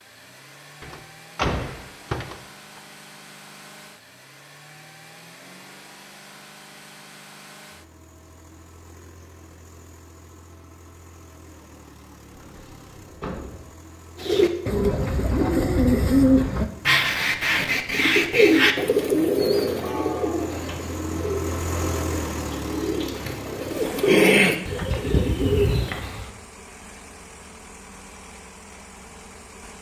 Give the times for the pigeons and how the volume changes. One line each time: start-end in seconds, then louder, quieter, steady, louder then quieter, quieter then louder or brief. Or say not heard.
14.2-26.3 quieter then louder.